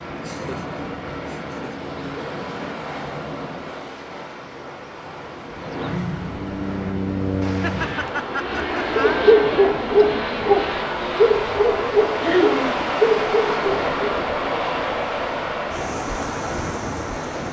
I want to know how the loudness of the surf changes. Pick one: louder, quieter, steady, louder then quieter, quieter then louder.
louder.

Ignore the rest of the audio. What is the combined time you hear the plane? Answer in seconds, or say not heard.
16 s.